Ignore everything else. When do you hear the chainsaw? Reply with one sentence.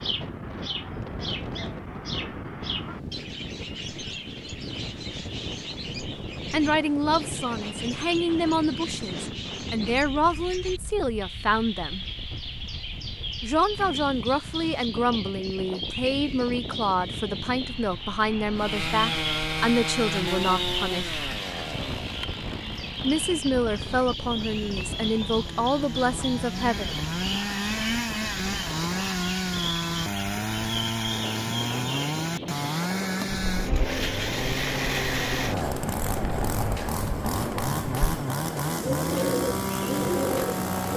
The chainsaw can be heard from 18.6 to 40.9 s.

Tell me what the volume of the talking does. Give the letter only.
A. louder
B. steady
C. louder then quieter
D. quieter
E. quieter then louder
B.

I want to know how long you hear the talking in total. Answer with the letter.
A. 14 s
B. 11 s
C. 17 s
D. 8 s
C.